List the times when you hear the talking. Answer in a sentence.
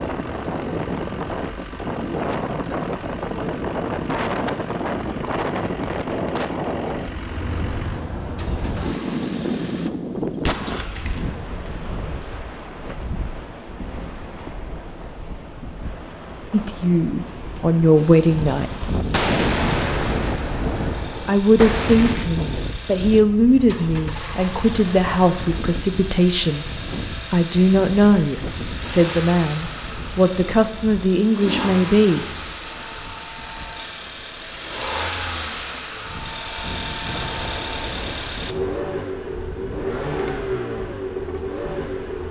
You can hear the talking from 16.5 to 18.9 s, from 21.2 to 26.6 s and from 27.3 to 32.2 s.